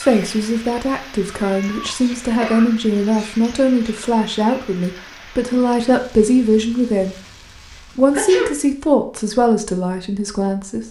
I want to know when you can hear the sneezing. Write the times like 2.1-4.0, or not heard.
2.0-3.9, 8.1-8.6.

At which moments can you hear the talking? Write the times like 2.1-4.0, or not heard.
0.0-7.2, 7.8-10.8.